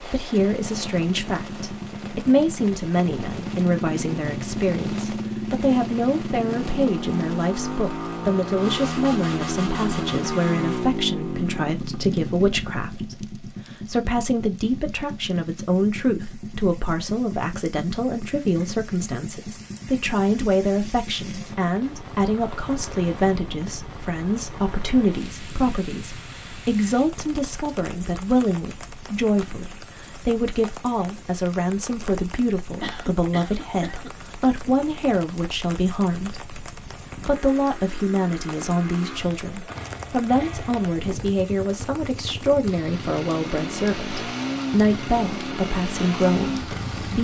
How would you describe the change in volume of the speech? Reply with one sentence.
The volume of the speech stays about the same.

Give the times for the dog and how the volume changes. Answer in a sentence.
You can't hear the dog here.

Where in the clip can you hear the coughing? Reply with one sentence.
The coughing can be heard from 32.8 to 34.1 s.